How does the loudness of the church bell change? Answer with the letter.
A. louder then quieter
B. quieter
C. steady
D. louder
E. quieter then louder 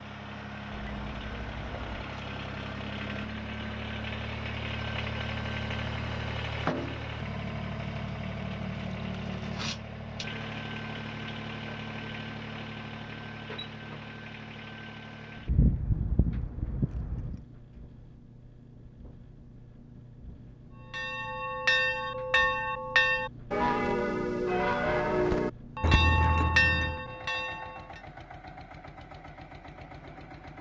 C.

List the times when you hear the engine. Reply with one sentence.
The engine can be heard from 0.0 to 30.5 s.